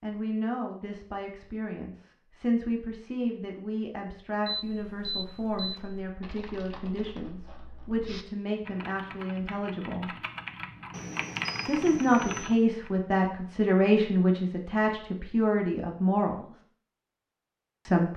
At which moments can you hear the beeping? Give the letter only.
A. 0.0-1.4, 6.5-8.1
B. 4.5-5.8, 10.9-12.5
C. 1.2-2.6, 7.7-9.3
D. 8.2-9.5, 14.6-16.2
B.